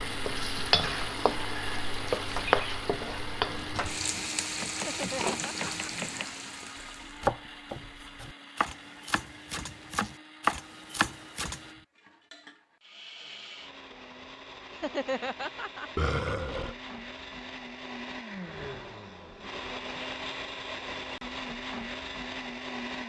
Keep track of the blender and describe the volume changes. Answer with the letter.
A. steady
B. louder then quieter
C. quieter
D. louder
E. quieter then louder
E.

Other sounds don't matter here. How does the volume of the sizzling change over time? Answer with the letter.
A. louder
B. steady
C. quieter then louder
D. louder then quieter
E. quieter
E.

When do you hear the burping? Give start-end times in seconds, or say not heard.
15.9-16.8.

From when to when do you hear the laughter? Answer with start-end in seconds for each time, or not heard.
4.8-5.9, 14.7-15.9.